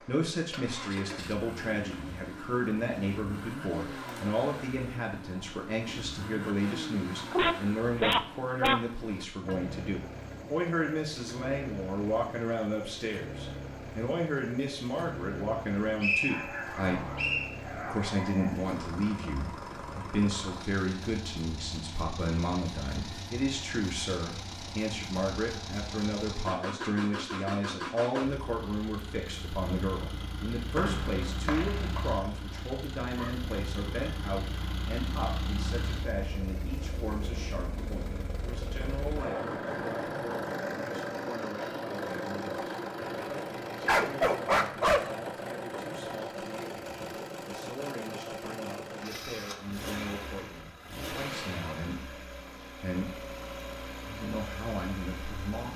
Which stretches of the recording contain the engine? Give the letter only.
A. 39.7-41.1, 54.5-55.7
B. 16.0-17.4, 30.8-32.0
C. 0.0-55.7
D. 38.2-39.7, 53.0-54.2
C.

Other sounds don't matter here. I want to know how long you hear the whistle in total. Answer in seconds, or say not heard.
3 s.